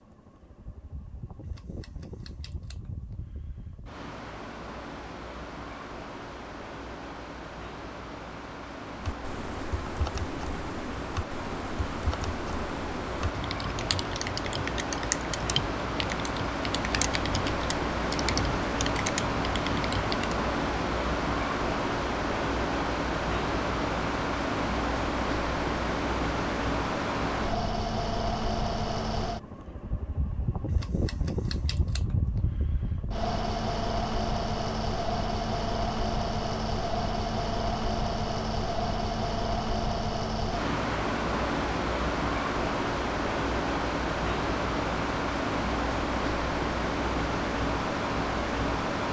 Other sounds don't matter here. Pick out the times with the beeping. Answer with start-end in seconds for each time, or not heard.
not heard.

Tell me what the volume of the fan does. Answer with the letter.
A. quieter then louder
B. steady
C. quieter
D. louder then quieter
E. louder
E.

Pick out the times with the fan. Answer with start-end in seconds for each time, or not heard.
0.0-49.0.